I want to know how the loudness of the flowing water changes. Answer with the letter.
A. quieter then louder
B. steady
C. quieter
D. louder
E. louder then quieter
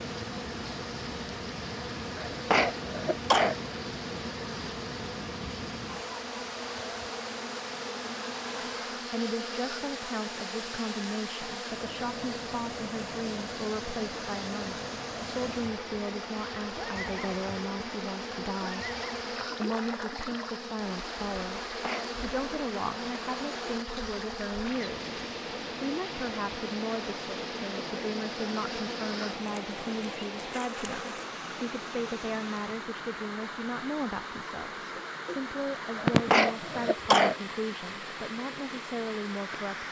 B.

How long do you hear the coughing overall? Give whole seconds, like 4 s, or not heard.
3 s.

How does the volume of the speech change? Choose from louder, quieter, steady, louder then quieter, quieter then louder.
steady.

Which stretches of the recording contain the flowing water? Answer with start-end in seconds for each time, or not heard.
0.0-39.8.